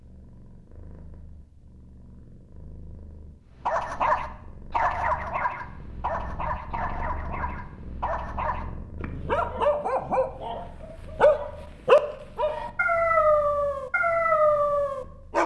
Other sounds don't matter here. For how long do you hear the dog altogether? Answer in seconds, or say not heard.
12 s.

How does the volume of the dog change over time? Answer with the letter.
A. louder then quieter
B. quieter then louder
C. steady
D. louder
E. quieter
B.